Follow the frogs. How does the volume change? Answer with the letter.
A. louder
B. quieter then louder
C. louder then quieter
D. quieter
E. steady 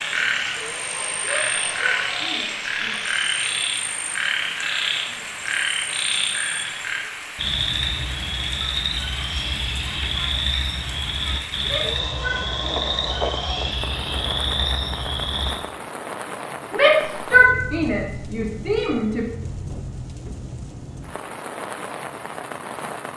E.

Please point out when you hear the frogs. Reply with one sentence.
The frogs can be heard from 0.0 to 15.6 s.